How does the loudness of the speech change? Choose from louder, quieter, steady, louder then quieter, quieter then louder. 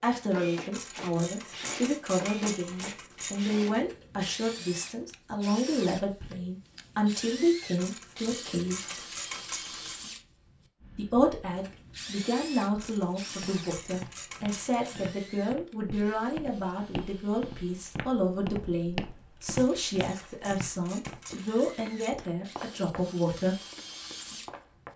steady.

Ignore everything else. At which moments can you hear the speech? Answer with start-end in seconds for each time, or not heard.
0.0-8.8, 10.9-23.6.